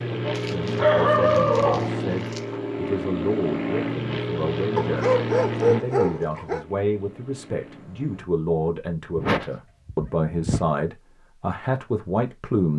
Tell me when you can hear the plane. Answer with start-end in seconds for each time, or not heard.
0.0-8.3.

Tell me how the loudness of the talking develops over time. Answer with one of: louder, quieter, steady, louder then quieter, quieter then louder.
louder.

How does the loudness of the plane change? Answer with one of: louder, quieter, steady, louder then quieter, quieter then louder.
quieter.